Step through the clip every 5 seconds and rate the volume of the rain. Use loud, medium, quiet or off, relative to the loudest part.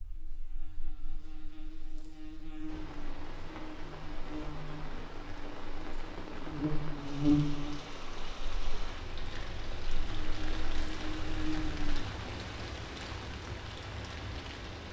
medium, loud, loud.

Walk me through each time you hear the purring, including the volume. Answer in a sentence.
The purring can't be heard in this clip.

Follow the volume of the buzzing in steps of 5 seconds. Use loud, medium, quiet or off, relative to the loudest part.
quiet, loud, medium.